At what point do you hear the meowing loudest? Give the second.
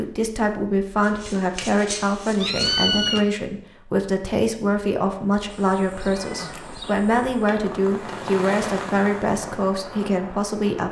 3 s.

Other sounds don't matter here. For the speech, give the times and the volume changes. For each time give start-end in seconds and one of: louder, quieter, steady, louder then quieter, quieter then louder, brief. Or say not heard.
0.0-10.8 steady.